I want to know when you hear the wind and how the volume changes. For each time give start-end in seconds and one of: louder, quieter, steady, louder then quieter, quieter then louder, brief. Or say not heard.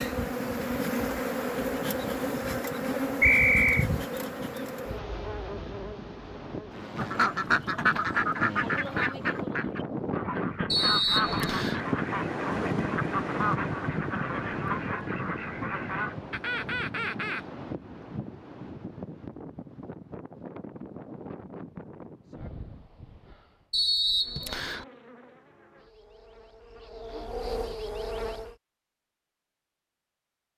0.1-23.6 louder then quieter.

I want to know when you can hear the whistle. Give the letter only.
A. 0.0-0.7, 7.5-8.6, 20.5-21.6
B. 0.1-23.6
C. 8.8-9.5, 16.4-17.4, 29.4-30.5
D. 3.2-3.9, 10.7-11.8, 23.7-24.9
D.